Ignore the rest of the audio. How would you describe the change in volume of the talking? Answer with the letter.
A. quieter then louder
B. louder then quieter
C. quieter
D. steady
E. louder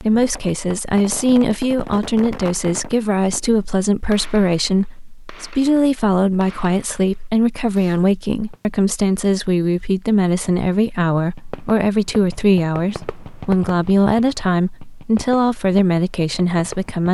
D.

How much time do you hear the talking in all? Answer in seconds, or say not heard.
17 s.